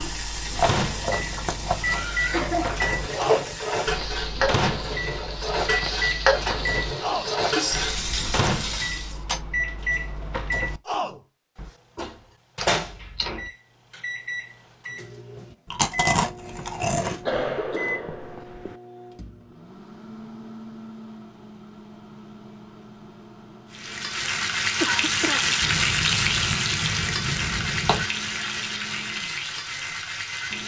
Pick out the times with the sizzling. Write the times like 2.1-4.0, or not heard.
0.0-9.2, 23.7-30.6.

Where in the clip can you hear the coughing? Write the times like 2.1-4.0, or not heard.
2.3-3.5, 17.2-18.8, 24.8-25.6.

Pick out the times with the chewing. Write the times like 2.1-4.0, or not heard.
0.6-2.0, 12.6-13.5, 15.7-17.2, 25.6-28.1.